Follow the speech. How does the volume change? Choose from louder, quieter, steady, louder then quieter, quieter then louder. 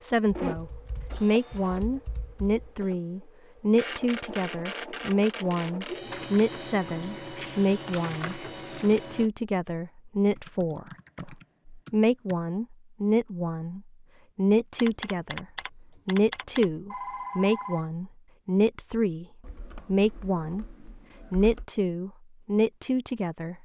steady.